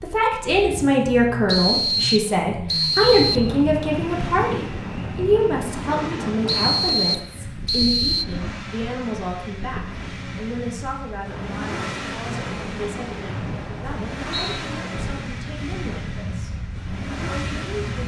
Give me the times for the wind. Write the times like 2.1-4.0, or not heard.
2.9-18.0.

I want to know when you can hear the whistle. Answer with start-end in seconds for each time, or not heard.
1.4-3.5, 6.5-8.2, 13.2-14.6.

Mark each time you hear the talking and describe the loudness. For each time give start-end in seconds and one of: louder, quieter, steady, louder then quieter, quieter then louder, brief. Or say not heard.
0.0-16.5 quieter
17.2-18.0 brief.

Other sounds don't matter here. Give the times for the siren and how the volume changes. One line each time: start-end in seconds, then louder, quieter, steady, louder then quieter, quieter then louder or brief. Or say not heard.
not heard.